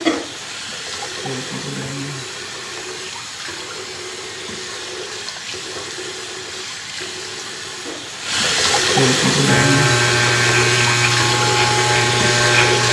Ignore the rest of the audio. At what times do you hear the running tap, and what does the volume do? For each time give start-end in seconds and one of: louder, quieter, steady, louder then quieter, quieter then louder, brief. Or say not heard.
0.0-12.8 louder.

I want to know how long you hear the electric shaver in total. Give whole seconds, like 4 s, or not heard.
3 s.